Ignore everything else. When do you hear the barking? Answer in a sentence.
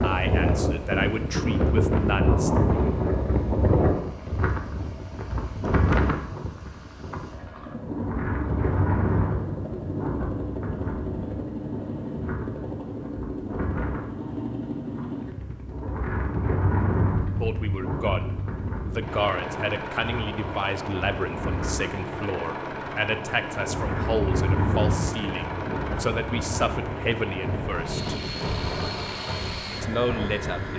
The barking can't be heard in this clip.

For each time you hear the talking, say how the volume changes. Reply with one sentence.
You can hear the talking briefly from 0.0 to 2.5 s; from 17.4 to 28.1 s, at a steady volume; and briefly from 29.8 to 30.7 s.